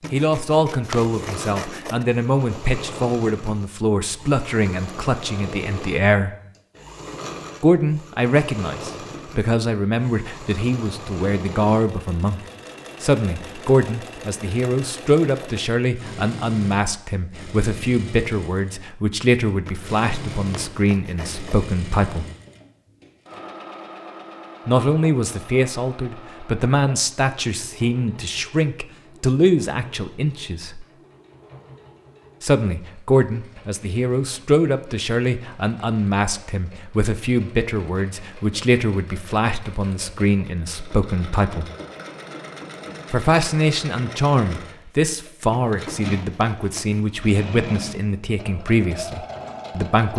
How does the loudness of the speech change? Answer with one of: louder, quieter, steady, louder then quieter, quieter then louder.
steady.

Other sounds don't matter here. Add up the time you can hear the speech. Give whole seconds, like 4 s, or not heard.
43 s.